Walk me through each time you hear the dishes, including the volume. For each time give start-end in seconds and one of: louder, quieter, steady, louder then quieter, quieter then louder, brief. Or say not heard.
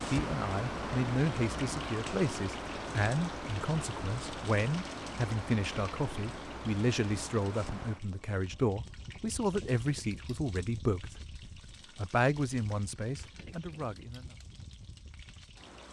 not heard.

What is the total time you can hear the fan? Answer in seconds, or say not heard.
16 s.